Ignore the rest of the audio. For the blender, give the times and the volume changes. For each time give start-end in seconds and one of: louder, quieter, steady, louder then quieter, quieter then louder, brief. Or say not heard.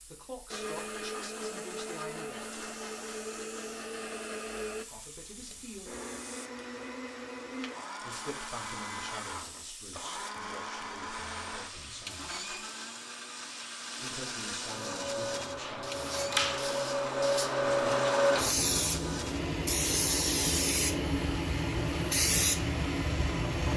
0.0-23.7 steady.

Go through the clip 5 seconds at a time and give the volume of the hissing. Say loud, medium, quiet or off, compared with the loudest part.
quiet, quiet, quiet, loud, loud.